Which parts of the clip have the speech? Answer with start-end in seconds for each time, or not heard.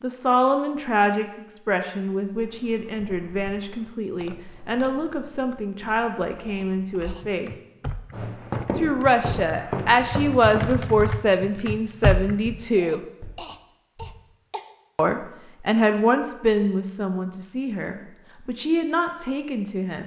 0.0-7.5, 8.8-13.0, 14.9-20.0.